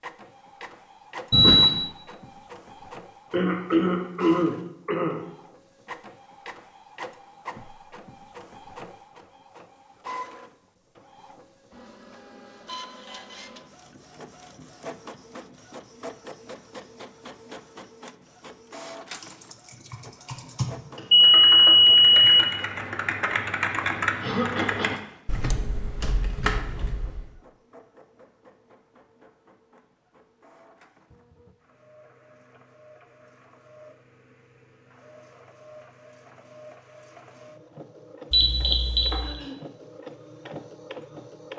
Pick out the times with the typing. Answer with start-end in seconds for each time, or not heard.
19.1-27.3.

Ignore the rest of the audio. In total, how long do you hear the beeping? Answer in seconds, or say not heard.
3 s.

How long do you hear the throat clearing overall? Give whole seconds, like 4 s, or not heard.
3 s.